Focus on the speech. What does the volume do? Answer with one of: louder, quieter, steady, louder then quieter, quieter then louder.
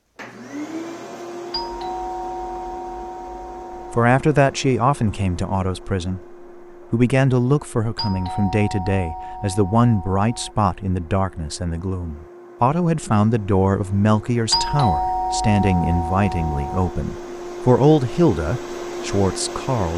steady.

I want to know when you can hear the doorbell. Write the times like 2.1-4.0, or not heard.
1.5-4.0, 8.0-10.6, 14.5-16.9.